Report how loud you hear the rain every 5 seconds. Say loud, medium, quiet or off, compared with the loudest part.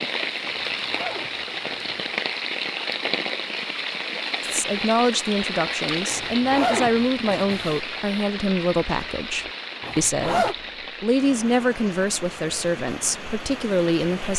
loud, loud, medium.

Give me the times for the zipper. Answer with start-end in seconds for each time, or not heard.
0.5-2.0, 6.1-7.8, 9.8-10.6.